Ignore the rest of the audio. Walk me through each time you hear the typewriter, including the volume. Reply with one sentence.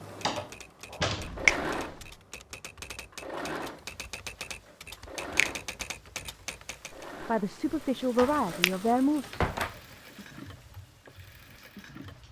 You can hear the typewriter from 0.0 to 7.0 s, getting louder.